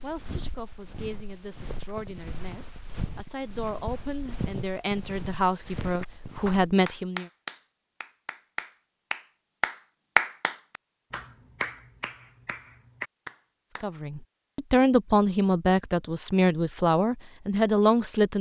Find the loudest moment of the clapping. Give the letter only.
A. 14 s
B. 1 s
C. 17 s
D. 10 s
D.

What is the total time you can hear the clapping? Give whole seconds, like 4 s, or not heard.
8 s.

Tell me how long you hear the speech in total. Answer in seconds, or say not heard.
12 s.